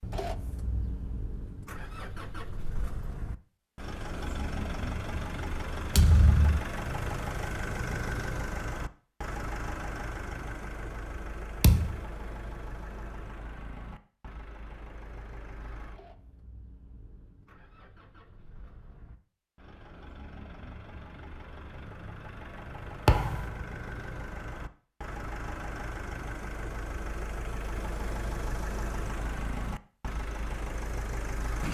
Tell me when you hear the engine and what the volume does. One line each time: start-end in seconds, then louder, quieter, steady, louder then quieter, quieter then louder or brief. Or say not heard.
0.0-31.6 quieter then louder.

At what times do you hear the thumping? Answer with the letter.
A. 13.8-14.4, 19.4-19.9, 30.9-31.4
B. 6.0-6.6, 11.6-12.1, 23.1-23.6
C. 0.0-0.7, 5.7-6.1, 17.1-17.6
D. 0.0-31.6
B.